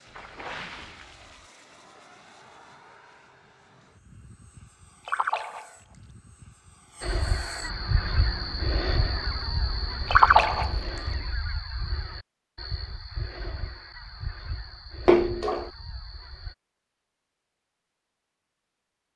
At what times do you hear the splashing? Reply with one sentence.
You can hear the splashing from 0.1 to 1.4 s, from 5.0 to 6.0 s, from 10.1 to 11.0 s and from 15.1 to 15.7 s.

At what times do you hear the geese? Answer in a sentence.
You can hear the geese from 7.0 to 16.6 s.